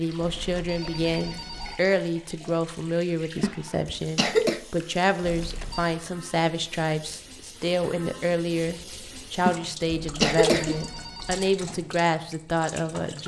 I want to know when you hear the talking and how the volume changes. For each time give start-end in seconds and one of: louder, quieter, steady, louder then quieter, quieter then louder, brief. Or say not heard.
0.0-13.2 steady.